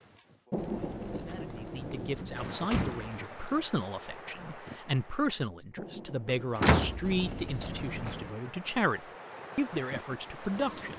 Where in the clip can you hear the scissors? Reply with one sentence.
You can hear the scissors from 0.6 to 2.5 s and from 7.0 to 8.3 s.